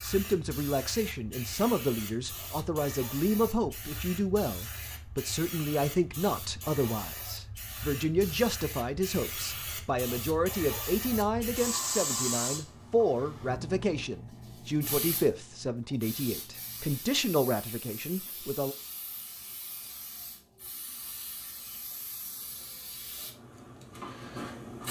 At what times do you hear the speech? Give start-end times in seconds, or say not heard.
0.0-18.8.